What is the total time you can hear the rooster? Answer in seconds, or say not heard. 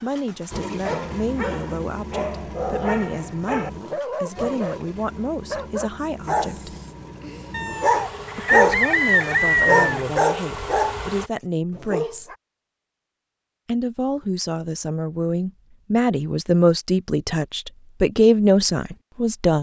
3 s.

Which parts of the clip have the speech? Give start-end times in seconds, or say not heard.
0.0-6.8, 8.3-12.3, 13.7-19.5.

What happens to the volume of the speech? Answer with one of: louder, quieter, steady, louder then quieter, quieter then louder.
louder.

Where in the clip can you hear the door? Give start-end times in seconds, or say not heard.
not heard.